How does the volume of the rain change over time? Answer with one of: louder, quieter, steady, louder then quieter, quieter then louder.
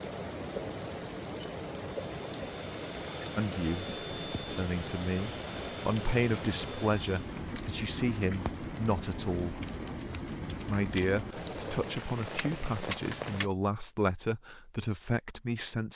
steady.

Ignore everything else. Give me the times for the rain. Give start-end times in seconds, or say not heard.
0.0-13.5.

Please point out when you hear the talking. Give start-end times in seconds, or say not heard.
3.4-9.7, 10.7-15.9.